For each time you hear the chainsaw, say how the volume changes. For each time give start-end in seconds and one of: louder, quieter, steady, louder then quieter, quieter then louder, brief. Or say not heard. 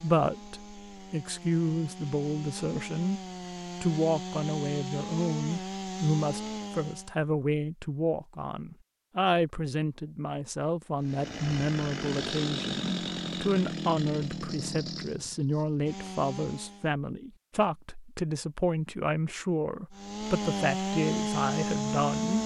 0.0-7.2 louder
11.0-16.9 quieter
19.9-22.4 brief.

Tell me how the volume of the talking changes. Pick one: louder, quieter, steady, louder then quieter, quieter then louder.
steady.